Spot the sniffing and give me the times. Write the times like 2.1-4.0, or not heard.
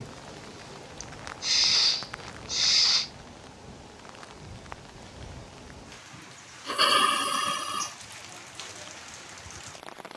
1.0-3.1, 6.7-7.9.